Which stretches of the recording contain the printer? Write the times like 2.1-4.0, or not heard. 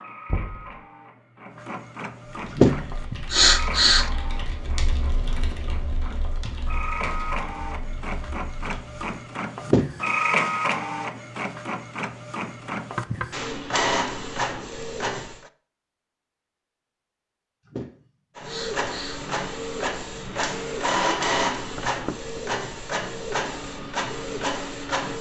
0.0-15.5, 18.4-25.1.